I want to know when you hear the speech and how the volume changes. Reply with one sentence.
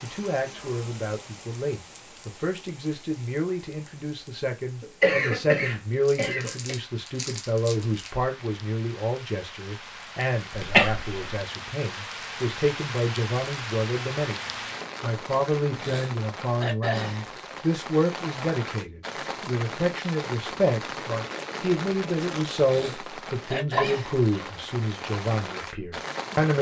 You can hear the speech from 0.0 to 26.5 s, at a steady volume.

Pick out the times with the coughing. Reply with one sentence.
You can hear the coughing from 4.8 to 6.8 s, from 10.5 to 11.3 s and from 23.8 to 24.5 s.